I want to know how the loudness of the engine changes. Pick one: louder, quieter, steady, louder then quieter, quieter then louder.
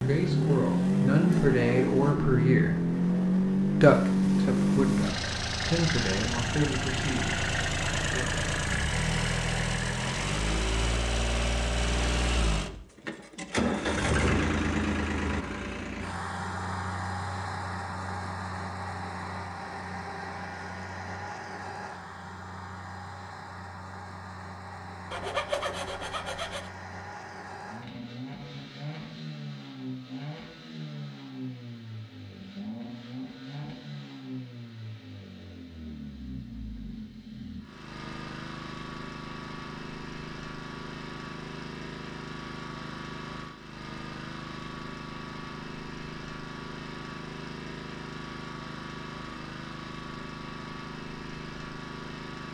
quieter.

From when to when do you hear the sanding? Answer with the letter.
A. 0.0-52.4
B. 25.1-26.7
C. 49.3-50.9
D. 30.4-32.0
B.